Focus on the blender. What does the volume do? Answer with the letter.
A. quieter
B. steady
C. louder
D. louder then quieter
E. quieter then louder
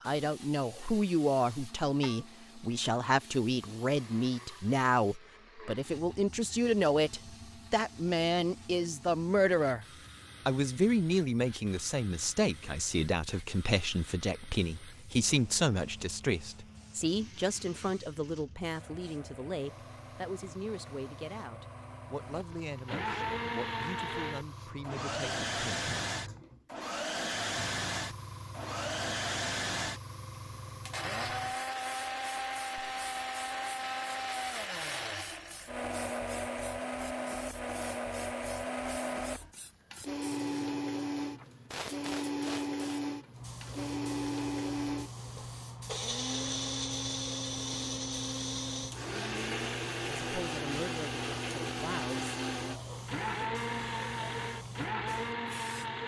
C.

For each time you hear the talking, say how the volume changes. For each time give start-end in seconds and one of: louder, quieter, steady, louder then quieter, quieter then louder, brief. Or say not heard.
0.0-9.8 steady
10.4-25.9 quieter
50.1-52.4 brief.